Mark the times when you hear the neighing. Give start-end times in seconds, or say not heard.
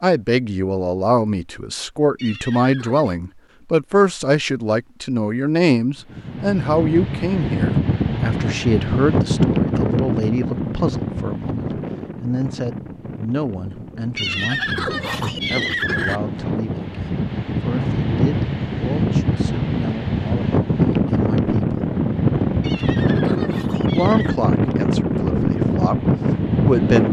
2.1-3.2, 14.2-16.2, 22.6-24.4.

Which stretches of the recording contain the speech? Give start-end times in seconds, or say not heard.
0.0-21.8, 23.9-27.0.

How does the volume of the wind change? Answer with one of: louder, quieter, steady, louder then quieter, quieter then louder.
quieter then louder.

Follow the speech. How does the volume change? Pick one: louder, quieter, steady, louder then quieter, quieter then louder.
quieter then louder.